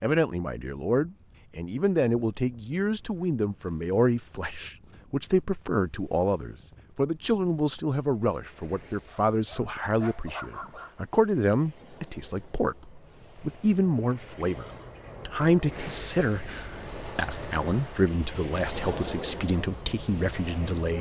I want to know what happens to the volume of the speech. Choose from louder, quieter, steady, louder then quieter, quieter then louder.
steady.